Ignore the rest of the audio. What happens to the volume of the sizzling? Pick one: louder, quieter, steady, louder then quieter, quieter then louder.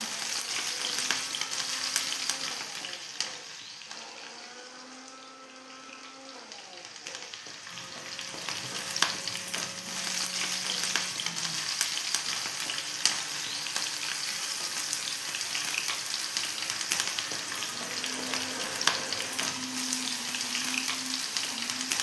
quieter then louder.